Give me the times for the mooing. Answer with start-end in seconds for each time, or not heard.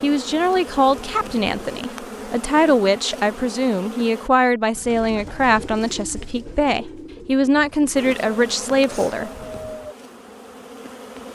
not heard.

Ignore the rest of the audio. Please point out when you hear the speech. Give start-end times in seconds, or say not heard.
0.0-9.3.